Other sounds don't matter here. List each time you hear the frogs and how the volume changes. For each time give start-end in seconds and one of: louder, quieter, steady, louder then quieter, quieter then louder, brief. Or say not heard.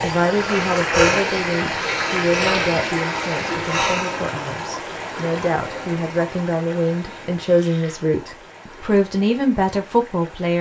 not heard.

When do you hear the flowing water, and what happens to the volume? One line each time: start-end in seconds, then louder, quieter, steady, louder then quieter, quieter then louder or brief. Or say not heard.
0.0-10.5 quieter.